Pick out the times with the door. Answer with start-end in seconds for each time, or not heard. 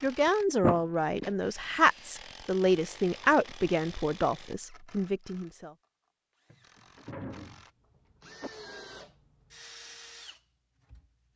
0.6-1.4, 6.5-8.5.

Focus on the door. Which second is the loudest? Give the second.
1 s.